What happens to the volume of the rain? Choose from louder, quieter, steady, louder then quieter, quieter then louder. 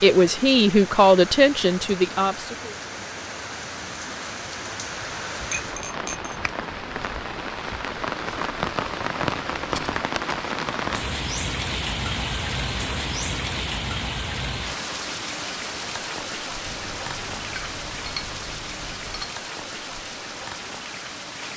louder then quieter.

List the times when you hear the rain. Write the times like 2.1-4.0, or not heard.
0.0-21.5.